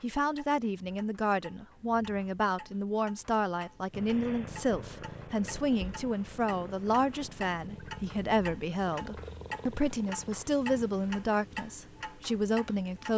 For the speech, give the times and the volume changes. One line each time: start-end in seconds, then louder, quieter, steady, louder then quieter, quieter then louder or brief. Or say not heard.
0.0-13.1 steady.